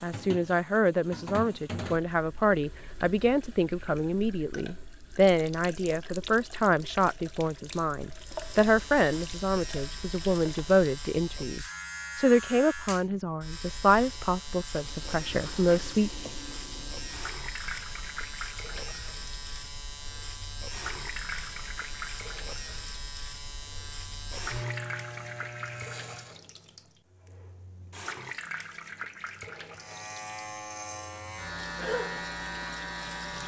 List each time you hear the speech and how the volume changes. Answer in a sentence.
The speech can be heard from 0.0 to 16.1 s, at a steady volume.